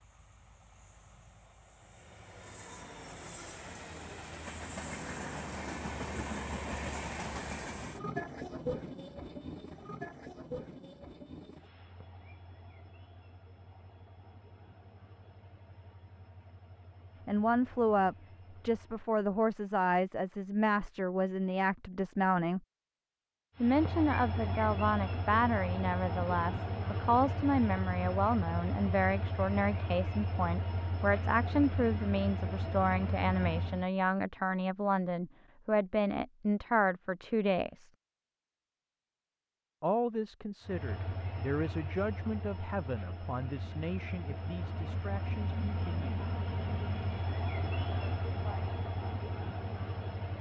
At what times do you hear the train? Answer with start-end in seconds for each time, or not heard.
0.0-19.1, 23.6-33.9, 40.6-50.3.